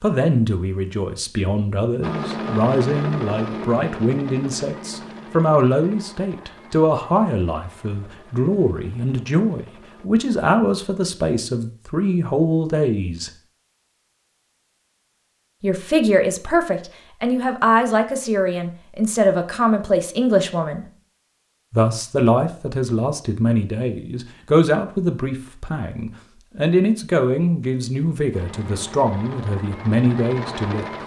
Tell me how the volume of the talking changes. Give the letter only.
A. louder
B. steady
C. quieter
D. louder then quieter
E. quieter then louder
B.